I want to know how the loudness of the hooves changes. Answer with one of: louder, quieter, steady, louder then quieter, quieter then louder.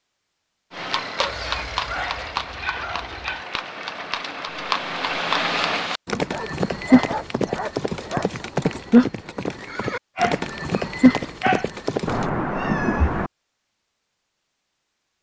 louder.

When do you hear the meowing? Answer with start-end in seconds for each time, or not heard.
1.2-1.9, 12.1-13.3.